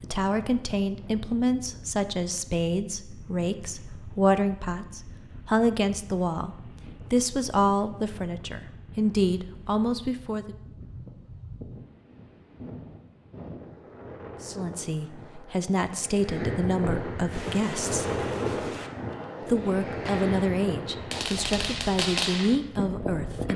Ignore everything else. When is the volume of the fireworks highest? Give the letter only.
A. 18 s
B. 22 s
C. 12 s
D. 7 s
B.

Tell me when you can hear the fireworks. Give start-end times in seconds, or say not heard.
17.2-23.5.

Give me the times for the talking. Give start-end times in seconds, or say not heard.
0.0-10.6, 14.4-18.1, 19.4-23.5.